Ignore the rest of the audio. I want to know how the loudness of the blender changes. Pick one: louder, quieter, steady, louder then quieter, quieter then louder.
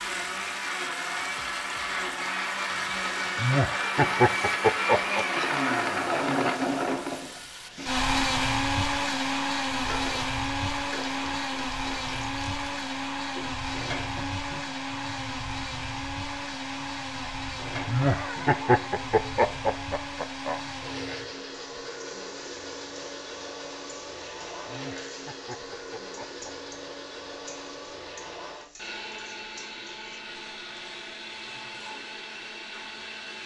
quieter.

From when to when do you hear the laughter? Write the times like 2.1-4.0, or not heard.
3.4-5.2, 17.9-20.6, 24.6-26.6.